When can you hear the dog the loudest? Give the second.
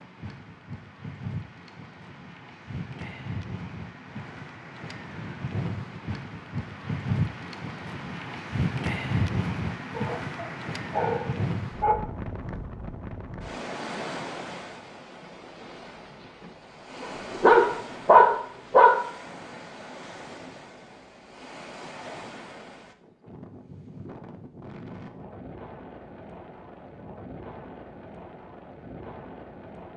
18 s.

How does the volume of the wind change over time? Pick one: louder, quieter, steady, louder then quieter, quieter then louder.
louder then quieter.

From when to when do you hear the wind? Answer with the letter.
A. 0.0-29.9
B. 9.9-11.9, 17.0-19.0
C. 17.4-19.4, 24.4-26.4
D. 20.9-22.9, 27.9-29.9
A.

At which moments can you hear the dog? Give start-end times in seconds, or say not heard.
9.9-11.9, 17.0-19.0.